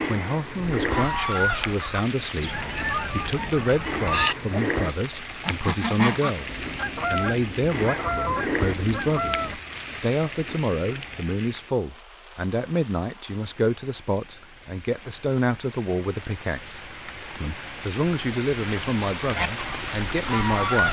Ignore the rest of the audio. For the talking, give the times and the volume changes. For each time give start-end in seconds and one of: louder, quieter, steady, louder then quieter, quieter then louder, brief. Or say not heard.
0.1-20.8 steady.